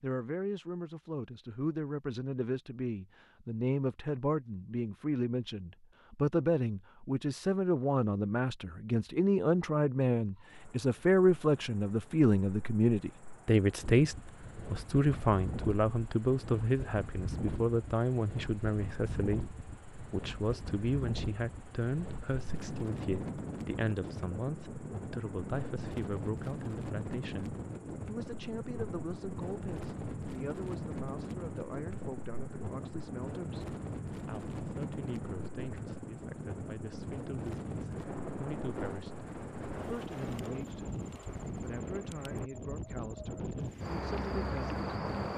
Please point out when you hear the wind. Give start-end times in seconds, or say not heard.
13.8-45.3.